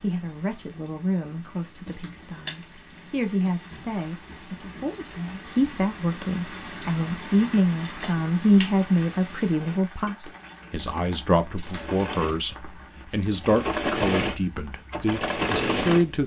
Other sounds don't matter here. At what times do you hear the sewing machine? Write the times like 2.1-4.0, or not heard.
9.5-16.2.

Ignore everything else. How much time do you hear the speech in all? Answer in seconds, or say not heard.
16 s.